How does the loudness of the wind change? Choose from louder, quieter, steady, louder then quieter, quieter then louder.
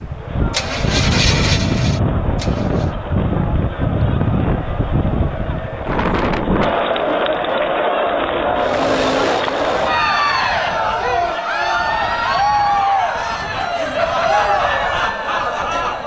quieter.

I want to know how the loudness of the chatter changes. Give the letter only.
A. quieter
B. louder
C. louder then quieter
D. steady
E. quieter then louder
B.